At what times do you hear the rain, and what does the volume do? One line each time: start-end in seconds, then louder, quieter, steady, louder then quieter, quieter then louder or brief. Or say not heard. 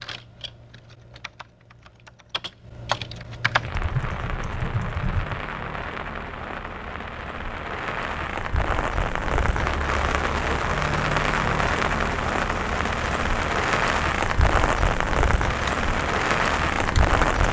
3.6-17.4 louder.